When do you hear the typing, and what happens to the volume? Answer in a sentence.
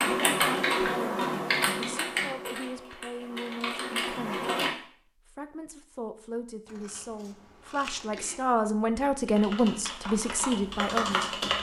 The typing can be heard from 0.0 to 4.7 s, getting quieter then louder; and briefly from 9.2 to 11.5 s.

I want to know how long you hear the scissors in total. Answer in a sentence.
The scissors can be heard for 2 seconds in total.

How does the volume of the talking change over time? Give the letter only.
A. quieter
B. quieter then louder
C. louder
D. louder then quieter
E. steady
C.